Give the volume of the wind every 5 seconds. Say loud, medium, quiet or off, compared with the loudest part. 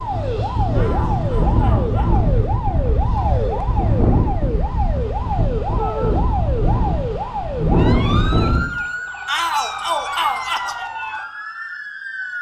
loud, loud, off.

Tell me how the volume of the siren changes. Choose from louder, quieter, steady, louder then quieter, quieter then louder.
steady.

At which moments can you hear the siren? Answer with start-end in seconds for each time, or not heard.
0.0-12.3.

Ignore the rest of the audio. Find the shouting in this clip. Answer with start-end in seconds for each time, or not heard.
0.7-2.2, 5.8-6.2, 9.2-10.8.